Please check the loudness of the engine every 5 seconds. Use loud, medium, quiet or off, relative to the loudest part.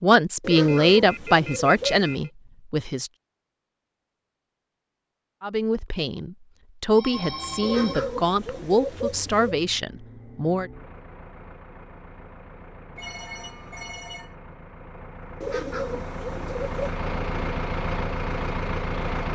off, quiet, quiet, loud.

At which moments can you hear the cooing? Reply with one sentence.
You can hear the cooing from 0.4 to 2.3 s, from 7.6 to 9.6 s and from 15.4 to 17.0 s.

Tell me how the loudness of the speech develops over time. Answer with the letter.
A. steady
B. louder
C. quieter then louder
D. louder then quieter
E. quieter
E.